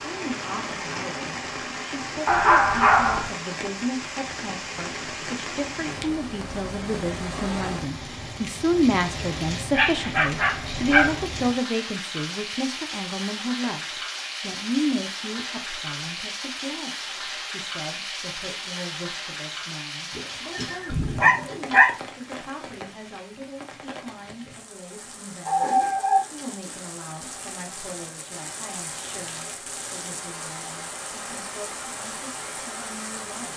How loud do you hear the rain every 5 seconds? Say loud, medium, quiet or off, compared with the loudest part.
loud, loud, loud, loud, medium, medium, loud.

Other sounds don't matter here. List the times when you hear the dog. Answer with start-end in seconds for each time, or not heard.
2.2-3.3, 9.7-11.2, 20.1-21.9, 25.4-26.8.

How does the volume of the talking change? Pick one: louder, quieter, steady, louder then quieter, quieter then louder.
louder then quieter.